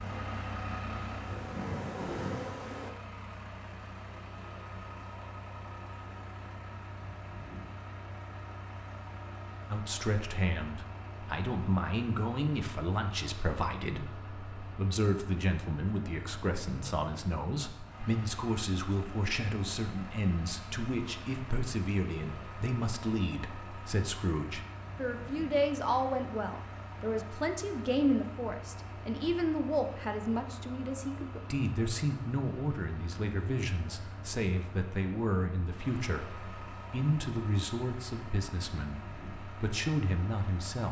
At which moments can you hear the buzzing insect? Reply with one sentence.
The buzzing insect can be heard from 0.0 to 2.9 s.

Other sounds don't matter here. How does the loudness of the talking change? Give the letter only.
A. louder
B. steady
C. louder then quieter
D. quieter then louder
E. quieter
B.